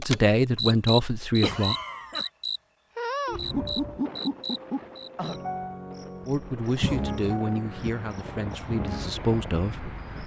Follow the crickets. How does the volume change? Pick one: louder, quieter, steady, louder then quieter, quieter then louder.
quieter.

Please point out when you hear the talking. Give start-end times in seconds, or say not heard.
0.0-1.8, 6.2-10.2.